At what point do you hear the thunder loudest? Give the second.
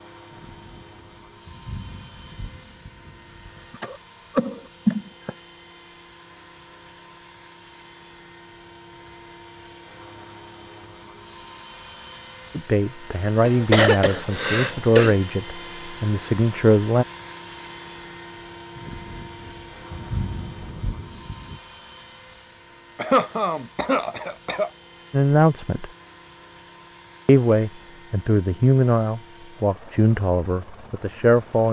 20 s.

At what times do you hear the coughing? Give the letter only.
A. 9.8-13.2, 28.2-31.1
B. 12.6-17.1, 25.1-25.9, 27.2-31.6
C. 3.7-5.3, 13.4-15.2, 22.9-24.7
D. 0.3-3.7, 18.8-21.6
C.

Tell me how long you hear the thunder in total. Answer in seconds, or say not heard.
6 s.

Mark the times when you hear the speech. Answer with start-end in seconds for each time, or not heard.
12.6-17.1, 25.1-25.9, 27.2-31.6.